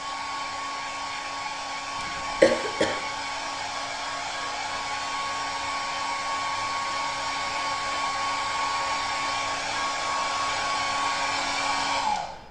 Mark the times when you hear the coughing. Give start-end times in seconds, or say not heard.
2.0-3.0.